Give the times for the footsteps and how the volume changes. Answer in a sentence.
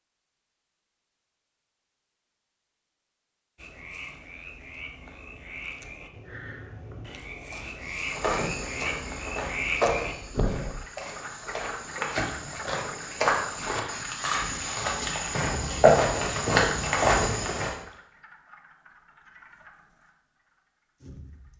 The footsteps can be heard from 7.8 to 17.8 s, getting quieter then louder.